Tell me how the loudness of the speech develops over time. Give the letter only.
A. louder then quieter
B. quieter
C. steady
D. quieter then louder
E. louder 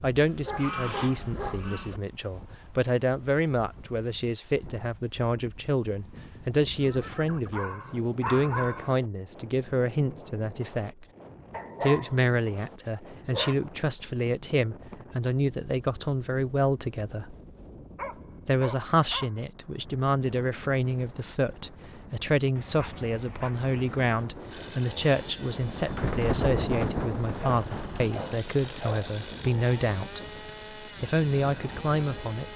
C.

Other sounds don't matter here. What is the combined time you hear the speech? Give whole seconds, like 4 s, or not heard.
31 s.